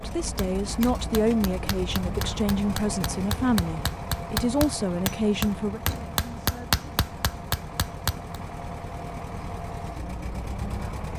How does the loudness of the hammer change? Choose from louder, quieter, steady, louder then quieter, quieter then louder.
louder.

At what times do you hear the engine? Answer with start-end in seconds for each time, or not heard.
0.0-11.1.